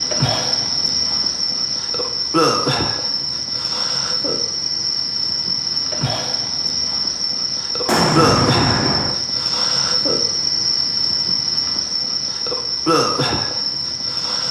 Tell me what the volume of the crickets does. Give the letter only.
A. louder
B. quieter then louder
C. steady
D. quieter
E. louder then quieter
C.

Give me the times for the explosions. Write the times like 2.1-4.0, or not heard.
7.8-9.2.